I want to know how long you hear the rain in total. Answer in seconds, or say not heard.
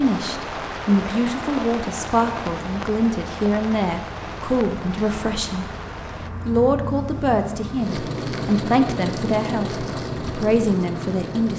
6 s.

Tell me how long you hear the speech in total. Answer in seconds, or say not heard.
11 s.